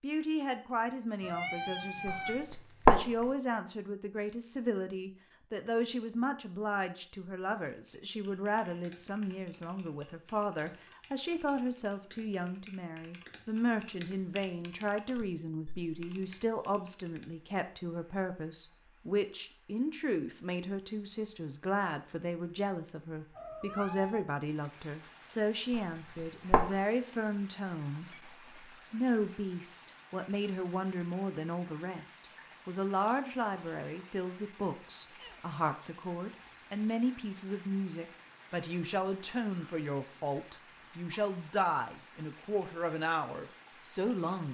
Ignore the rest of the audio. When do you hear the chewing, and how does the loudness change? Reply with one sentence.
You can't hear the chewing here.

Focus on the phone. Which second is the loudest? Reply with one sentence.
The loudest moment of the phone is at 3 seconds.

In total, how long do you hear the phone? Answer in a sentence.
The phone can be heard for 2 seconds in total.